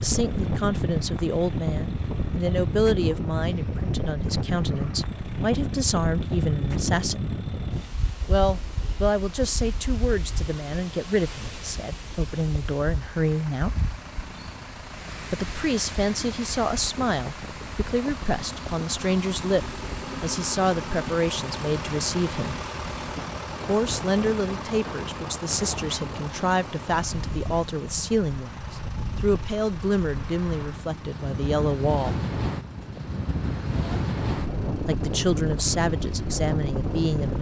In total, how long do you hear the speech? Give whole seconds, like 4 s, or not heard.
31 s.